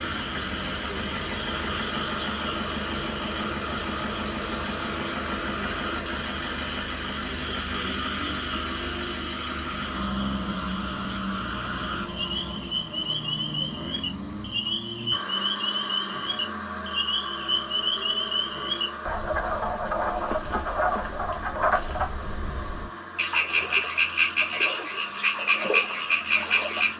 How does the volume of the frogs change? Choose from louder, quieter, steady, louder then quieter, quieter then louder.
louder.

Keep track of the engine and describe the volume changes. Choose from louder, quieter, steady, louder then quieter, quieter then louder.
quieter.